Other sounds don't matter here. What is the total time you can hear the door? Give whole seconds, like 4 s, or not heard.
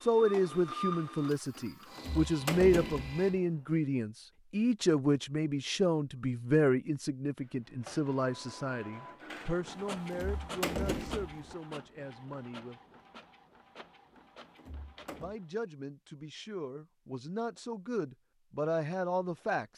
5 s.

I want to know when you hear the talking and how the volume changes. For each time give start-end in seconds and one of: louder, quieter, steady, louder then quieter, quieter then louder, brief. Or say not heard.
0.0-12.8 quieter
15.2-19.6 louder.